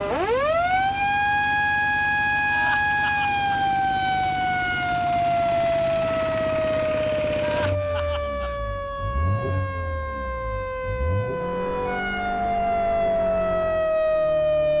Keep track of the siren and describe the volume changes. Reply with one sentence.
The volume of the siren goes down, then up.